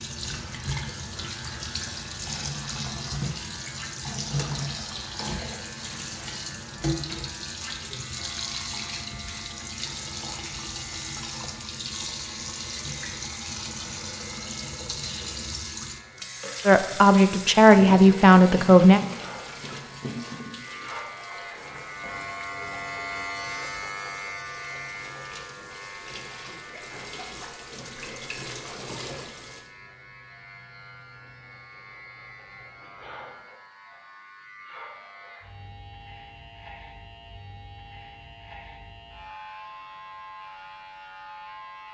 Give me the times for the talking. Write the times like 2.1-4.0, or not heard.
16.6-19.0.